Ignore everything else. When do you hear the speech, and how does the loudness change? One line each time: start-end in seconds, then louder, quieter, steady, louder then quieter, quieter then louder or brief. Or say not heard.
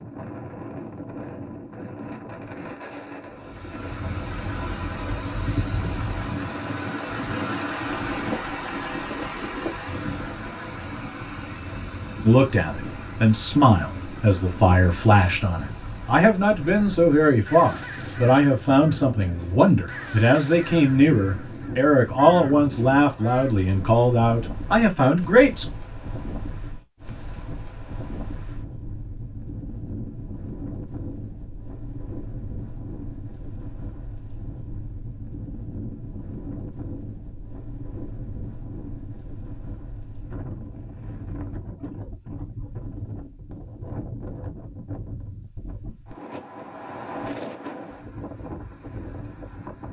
12.2-25.6 steady.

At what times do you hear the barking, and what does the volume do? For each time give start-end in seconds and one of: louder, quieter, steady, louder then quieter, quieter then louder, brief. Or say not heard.
not heard.